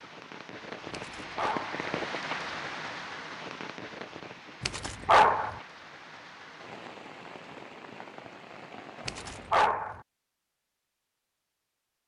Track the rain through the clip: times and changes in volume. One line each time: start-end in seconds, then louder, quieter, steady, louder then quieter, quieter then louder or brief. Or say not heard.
0.0-9.7 quieter.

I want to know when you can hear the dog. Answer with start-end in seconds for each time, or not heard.
0.9-1.9, 4.6-5.6, 9.1-10.0.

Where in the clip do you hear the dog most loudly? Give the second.
5 s.